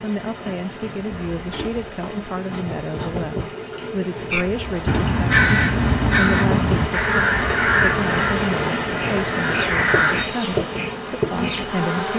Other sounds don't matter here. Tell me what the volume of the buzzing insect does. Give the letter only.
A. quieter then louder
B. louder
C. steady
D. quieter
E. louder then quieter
B.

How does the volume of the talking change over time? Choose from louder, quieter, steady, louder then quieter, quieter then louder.
steady.